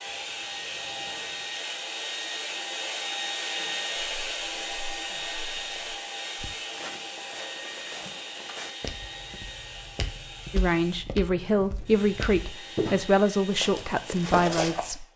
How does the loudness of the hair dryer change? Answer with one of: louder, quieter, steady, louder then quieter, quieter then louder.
quieter.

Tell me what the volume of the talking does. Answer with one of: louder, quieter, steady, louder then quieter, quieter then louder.
steady.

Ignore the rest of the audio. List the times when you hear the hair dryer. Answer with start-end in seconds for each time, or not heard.
0.0-15.1.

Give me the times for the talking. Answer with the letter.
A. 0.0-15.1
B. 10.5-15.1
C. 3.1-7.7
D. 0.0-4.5
B.